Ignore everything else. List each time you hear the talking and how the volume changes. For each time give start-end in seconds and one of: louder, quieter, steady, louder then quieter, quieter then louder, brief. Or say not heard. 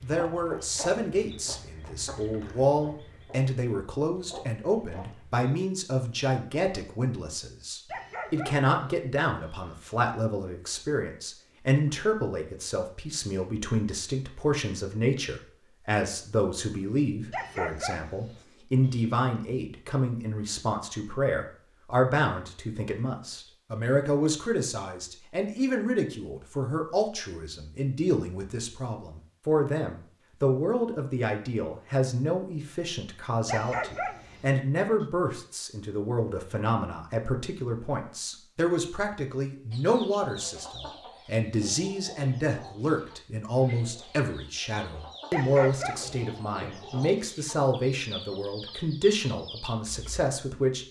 0.0-50.8 steady.